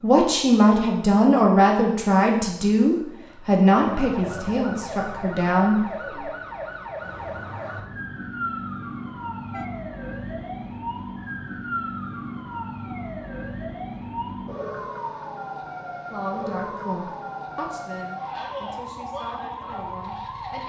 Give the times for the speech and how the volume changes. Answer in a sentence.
The speech can be heard from 0.0 to 5.8 s, getting quieter; and from 16.1 to 20.6 s, getting quieter.